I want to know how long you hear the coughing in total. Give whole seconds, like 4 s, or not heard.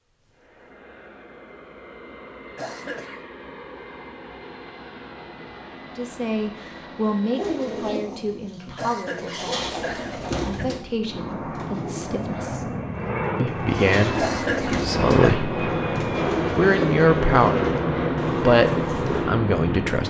4 s.